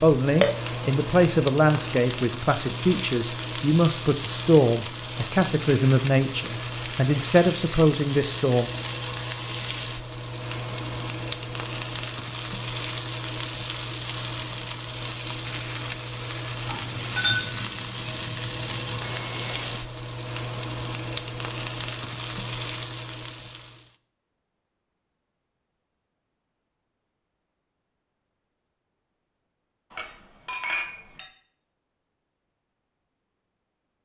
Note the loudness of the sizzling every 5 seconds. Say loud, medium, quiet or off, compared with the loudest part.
loud, loud, loud, loud, loud, off, off.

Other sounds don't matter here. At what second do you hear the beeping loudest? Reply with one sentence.
The loudest moment of the beeping is at 19 seconds.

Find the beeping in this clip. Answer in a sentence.
The beeping can be heard from 10.5 to 11.2 s and from 19.0 to 19.8 s.